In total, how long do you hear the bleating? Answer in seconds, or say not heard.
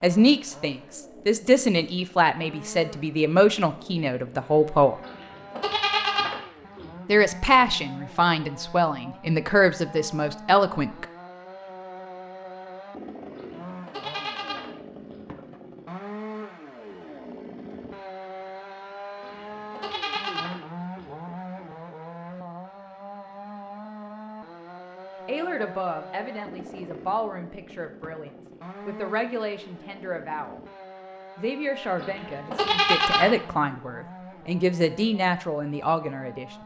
7 s.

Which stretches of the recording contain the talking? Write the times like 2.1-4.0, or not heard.
0.0-5.0, 7.0-11.1, 25.2-30.6, 31.4-36.5.